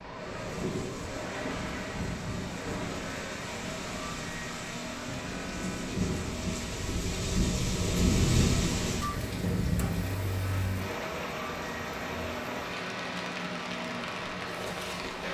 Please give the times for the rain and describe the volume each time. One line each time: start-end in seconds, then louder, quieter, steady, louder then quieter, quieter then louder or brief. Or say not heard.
0.1-15.2 louder then quieter.